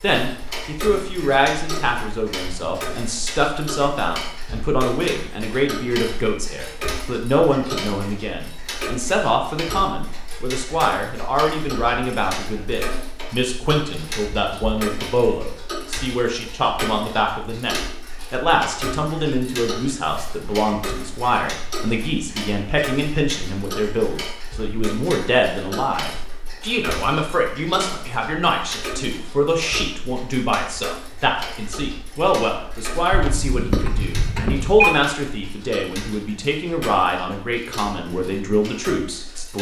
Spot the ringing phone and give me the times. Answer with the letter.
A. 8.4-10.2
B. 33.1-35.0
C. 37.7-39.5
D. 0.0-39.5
B.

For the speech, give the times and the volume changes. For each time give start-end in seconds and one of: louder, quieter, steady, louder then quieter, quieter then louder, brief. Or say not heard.
0.0-39.5 steady.